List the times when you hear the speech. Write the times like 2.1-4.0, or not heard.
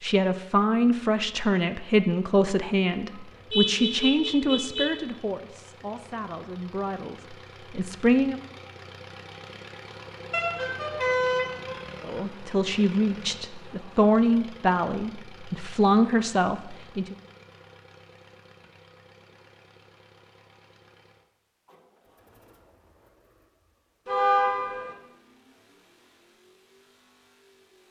0.0-8.4, 12.0-17.1.